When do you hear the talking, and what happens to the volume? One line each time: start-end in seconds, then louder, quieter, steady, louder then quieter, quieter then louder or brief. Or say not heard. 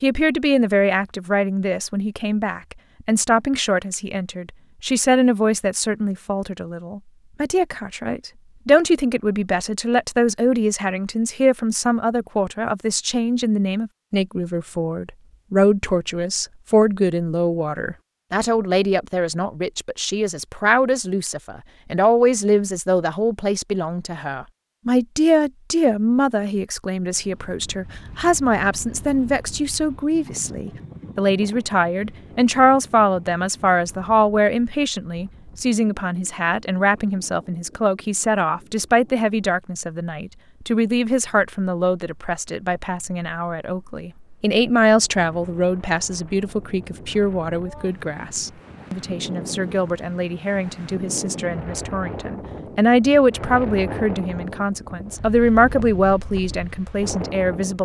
0.0-57.7 steady.